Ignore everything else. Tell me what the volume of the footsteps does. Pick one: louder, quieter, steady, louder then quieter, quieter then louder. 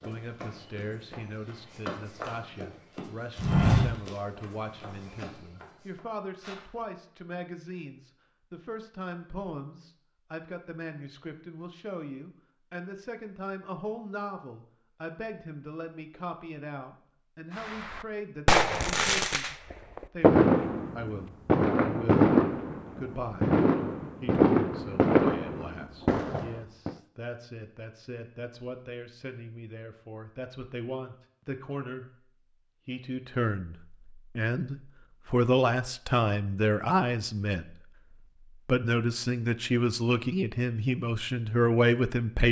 louder then quieter.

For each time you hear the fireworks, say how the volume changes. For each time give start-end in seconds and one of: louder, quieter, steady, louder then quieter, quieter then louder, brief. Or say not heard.
17.6-26.9 steady.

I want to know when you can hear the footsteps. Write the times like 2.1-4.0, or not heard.
0.0-6.7.